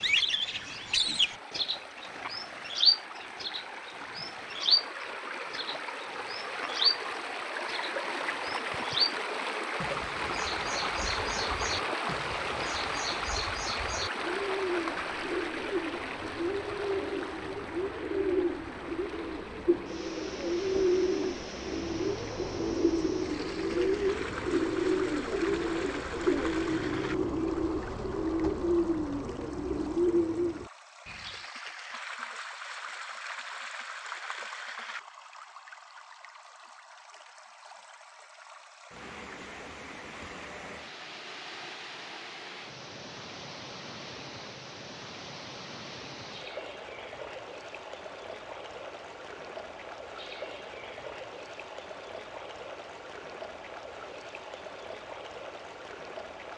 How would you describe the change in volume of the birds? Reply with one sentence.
The volume of the birds goes down, then up.